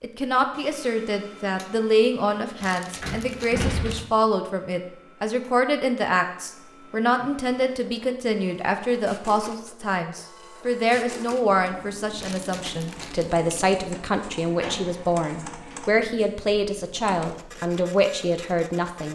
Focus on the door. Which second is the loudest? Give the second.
4 s.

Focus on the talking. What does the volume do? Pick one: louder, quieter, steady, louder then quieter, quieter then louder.
steady.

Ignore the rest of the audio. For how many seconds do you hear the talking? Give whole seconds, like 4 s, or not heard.
19 s.